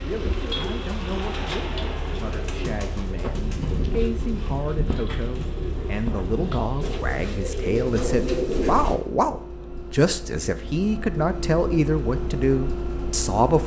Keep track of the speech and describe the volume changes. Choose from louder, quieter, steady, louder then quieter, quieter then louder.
louder.